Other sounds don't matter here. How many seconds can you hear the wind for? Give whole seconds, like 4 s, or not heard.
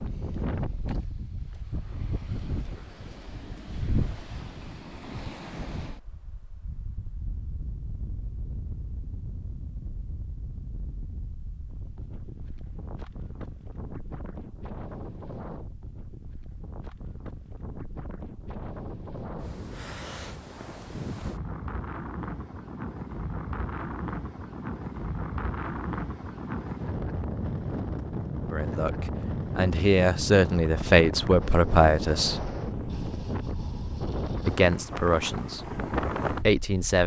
37 s.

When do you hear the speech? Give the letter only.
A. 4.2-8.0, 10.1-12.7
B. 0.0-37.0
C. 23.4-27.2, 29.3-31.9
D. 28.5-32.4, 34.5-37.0
D.